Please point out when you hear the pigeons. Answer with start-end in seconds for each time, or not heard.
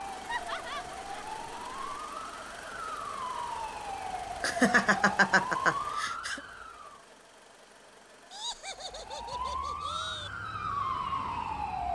not heard.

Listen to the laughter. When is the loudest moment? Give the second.
5 s.